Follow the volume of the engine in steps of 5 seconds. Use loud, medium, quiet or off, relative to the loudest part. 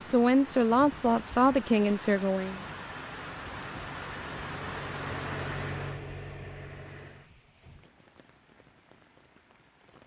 medium, loud.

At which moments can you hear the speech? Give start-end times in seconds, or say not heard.
0.0-2.6.